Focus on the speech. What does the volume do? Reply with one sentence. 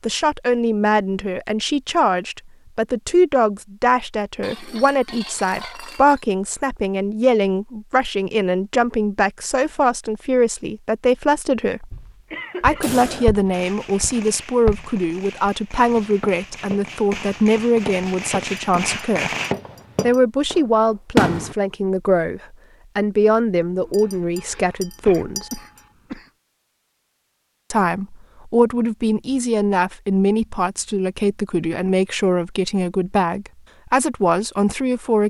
The loudness of the speech stays about the same.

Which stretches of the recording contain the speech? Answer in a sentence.
The speech can be heard from 0.0 to 11.9 s, from 12.6 to 19.3 s, from 20.0 to 25.5 s and from 27.7 to 35.2 s.